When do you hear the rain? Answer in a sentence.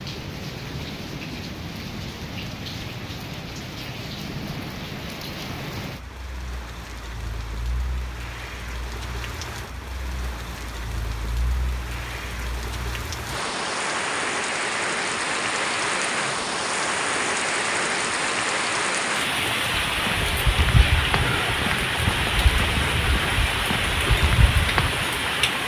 The rain can be heard from 0.0 to 25.6 s.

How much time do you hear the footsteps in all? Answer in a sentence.
You can hear the footsteps for 5 seconds altogether.